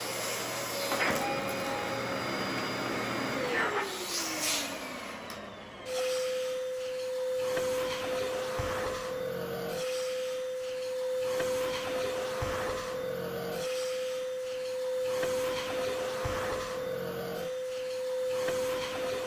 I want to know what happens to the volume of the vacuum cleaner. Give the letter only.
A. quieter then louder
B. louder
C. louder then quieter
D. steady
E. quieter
D.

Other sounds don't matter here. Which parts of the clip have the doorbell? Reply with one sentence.
You can hear the doorbell from 1.2 to 1.9 s.